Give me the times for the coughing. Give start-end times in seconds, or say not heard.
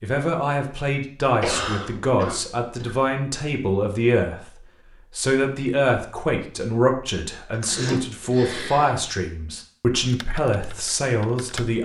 1.4-3.0, 7.5-8.9.